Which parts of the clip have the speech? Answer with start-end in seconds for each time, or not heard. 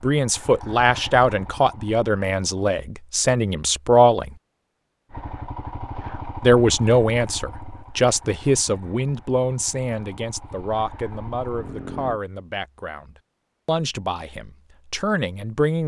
0.0-4.3, 6.4-15.8.